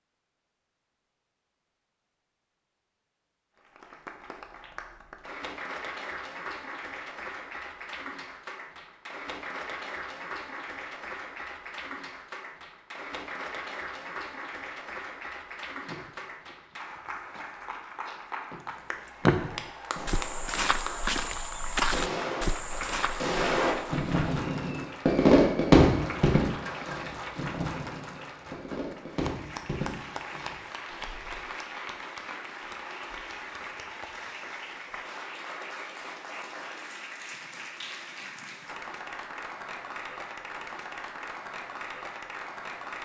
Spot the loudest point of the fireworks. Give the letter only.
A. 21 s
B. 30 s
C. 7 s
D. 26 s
D.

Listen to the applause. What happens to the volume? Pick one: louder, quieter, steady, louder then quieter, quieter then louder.
steady.